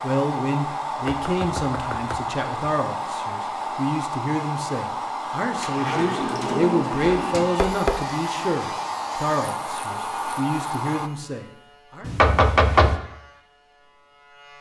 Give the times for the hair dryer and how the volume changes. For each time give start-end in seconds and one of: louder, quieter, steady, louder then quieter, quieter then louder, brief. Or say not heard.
0.0-11.1 steady.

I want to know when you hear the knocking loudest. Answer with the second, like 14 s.
13 s.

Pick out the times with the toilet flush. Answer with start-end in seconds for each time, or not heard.
5.5-7.5.